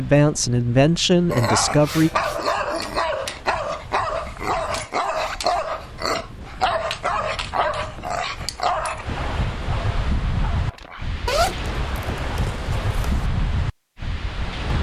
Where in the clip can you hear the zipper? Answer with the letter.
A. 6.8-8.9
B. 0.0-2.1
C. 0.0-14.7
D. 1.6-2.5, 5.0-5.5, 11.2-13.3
D.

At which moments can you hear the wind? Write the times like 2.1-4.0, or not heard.
0.0-14.7.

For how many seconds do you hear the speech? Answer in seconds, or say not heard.
2 s.